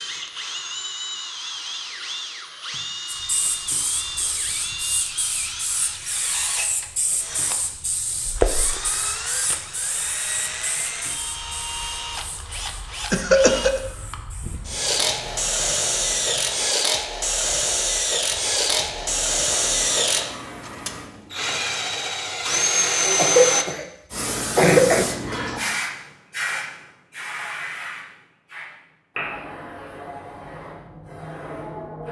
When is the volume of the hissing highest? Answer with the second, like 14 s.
25 s.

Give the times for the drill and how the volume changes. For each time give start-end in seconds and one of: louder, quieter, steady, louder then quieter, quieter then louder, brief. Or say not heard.
0.0-23.6 louder.